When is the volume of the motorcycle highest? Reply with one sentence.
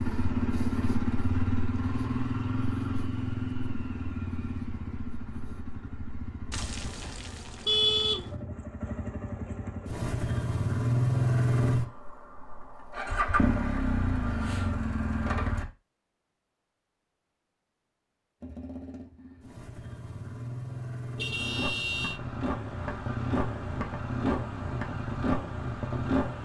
The loudest moment of the motorcycle is at 11 seconds.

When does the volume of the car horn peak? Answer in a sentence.
The loudest moment of the car horn is at 8 seconds.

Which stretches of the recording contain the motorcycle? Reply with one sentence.
You can hear the motorcycle from 0.0 to 15.7 s and from 18.4 to 26.4 s.